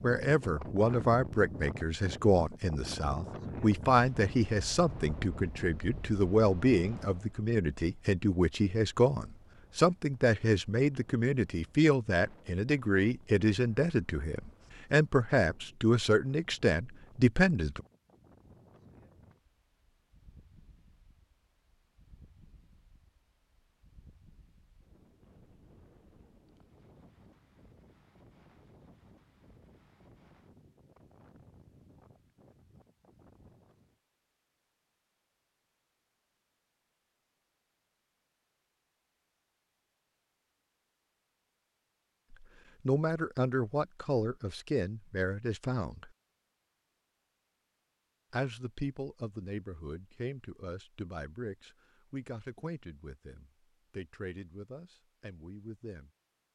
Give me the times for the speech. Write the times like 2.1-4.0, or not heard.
0.0-17.8, 42.3-46.1, 48.3-56.1.